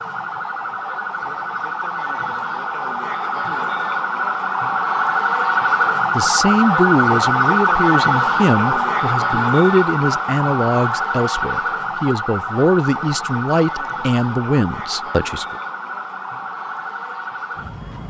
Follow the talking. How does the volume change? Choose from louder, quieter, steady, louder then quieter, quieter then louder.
steady.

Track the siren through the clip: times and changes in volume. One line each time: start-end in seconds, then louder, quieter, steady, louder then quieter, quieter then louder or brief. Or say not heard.
0.0-18.0 louder then quieter.